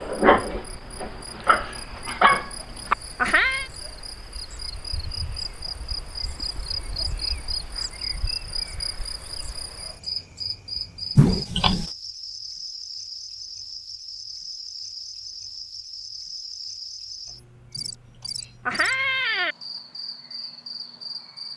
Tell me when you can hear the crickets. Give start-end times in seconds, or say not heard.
0.0-21.5.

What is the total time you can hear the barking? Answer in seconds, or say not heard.
3 s.